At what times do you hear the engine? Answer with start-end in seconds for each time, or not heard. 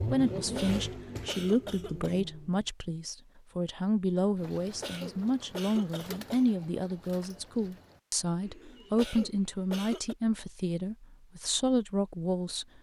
0.0-2.6.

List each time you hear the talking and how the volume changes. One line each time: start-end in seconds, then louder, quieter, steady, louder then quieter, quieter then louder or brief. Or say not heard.
0.0-12.7 steady.